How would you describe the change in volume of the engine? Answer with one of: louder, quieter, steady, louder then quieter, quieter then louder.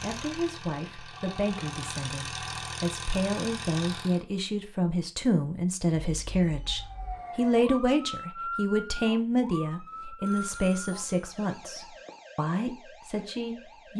louder.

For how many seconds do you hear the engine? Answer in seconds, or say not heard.
4 s.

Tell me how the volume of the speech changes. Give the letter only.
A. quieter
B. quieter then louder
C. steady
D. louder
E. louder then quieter
E.